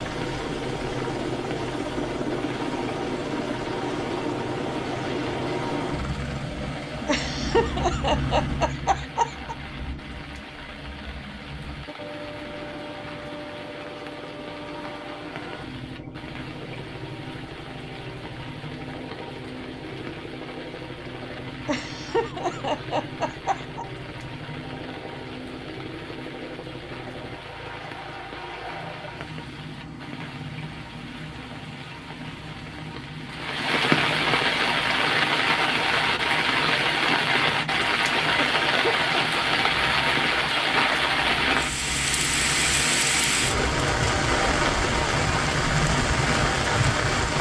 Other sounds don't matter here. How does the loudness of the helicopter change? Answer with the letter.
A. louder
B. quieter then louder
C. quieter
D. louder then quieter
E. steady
C.